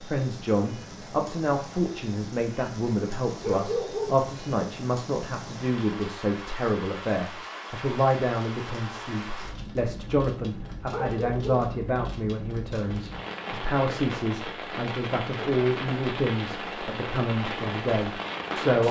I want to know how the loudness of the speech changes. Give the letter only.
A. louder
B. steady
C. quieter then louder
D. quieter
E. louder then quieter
B.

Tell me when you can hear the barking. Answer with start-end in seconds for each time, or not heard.
3.4-4.2, 10.9-11.7.